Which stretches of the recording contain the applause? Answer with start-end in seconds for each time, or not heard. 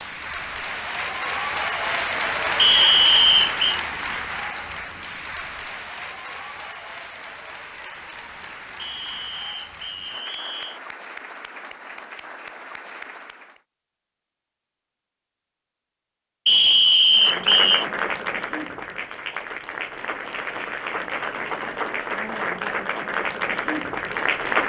0.0-13.6, 17.1-24.6.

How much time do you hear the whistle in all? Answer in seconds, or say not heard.
5 s.